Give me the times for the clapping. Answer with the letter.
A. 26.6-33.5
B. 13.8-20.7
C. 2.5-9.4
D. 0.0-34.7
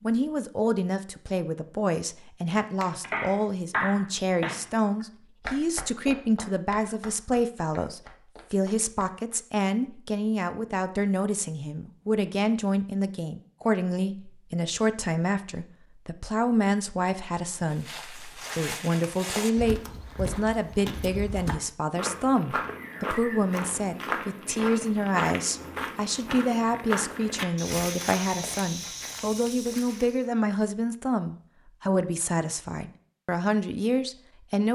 C.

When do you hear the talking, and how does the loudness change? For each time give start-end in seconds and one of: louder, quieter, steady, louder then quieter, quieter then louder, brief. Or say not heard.
0.0-34.7 steady.